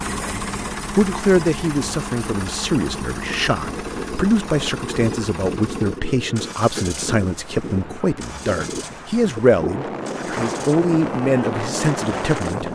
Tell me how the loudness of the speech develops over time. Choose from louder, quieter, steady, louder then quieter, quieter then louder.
steady.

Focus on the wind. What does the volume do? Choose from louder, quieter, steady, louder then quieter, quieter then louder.
louder.